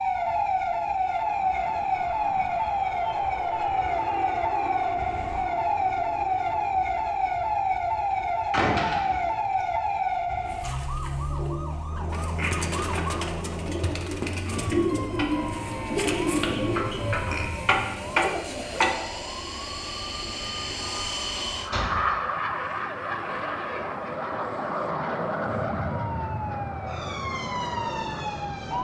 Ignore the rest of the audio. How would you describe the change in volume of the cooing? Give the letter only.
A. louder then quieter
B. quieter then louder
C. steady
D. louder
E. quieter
D.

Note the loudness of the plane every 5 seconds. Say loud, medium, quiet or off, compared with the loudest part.
medium, quiet, medium, medium, loud, loud.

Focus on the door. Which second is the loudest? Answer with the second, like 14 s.
9 s.